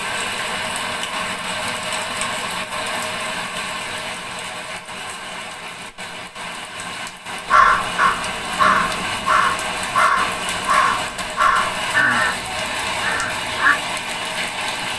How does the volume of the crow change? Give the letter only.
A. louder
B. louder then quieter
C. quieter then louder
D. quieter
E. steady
D.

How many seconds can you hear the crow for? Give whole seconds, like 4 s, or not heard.
6 s.